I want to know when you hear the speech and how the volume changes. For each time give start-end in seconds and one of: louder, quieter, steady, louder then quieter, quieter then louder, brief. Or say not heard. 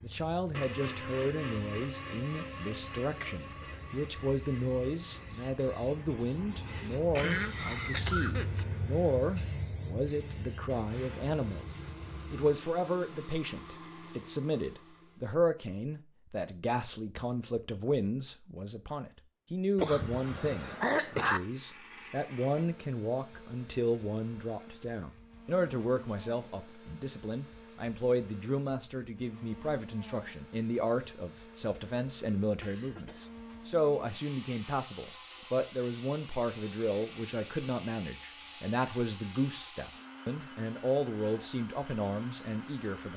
0.0-11.7 steady
12.3-43.1 steady.